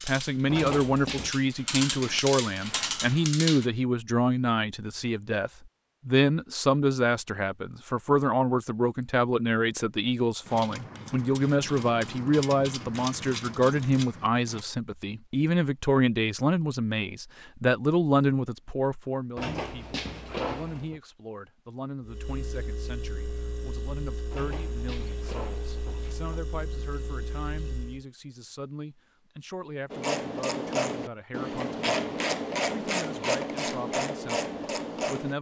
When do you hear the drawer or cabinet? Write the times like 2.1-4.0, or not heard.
0.5-1.4, 19.4-21.0, 24.3-26.4.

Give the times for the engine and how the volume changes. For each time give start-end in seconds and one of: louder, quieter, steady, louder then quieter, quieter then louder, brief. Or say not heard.
22.0-28.1 steady.